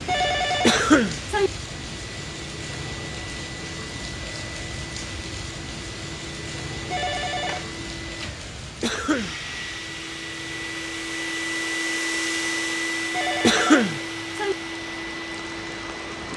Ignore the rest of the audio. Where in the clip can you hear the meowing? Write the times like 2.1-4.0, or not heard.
not heard.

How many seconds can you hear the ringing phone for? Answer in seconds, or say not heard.
4 s.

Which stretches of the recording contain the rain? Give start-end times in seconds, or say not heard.
0.0-16.3.